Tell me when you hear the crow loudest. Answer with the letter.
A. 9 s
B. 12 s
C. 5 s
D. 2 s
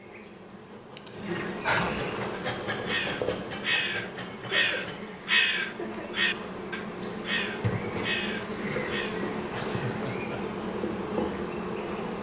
C.